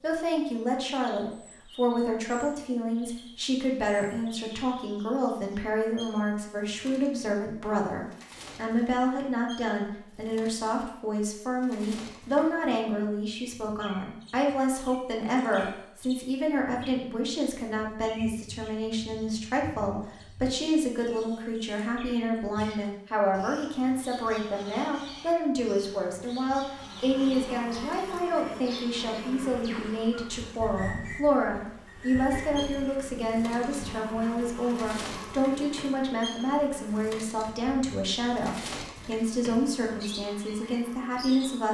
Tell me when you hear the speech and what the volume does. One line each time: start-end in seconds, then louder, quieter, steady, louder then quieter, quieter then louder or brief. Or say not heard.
0.0-41.6 steady.